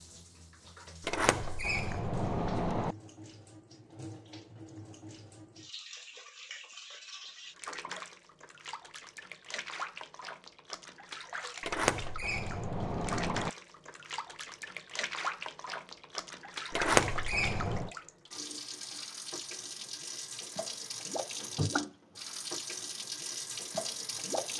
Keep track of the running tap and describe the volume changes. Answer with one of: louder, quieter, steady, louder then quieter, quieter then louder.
louder.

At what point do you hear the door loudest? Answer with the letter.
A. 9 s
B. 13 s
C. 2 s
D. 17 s
D.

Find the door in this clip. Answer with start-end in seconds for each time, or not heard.
1.1-3.0, 11.6-13.5, 16.7-17.9.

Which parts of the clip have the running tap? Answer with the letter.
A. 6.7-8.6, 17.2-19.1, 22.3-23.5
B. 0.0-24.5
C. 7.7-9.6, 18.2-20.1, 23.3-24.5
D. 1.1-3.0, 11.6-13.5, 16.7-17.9
B.